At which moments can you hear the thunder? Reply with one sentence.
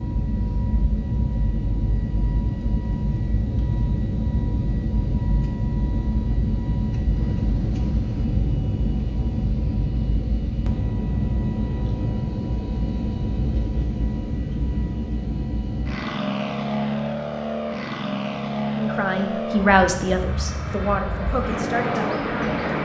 You can hear the thunder from 7.2 to 8.2 s.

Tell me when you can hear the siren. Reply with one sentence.
You can't hear the siren here.